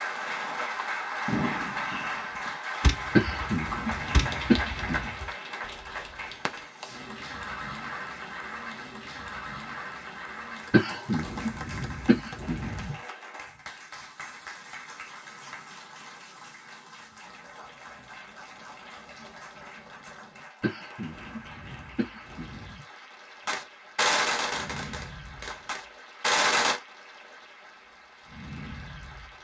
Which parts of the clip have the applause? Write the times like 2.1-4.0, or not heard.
0.0-29.3.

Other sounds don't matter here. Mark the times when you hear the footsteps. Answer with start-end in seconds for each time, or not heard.
not heard.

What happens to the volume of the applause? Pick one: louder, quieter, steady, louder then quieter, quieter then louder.
quieter.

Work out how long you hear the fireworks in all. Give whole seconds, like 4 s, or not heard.
10 s.